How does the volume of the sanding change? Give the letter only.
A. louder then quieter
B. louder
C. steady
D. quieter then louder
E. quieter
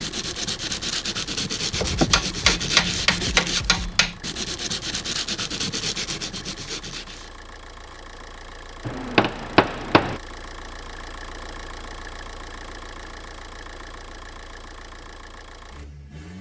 C.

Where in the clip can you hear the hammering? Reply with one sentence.
The hammering can be heard from 1.7 to 4.2 s and from 8.8 to 10.2 s.